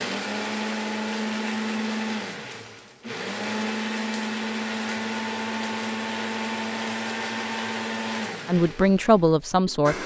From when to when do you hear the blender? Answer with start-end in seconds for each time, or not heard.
0.0-10.0.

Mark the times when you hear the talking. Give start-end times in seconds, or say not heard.
8.4-9.9.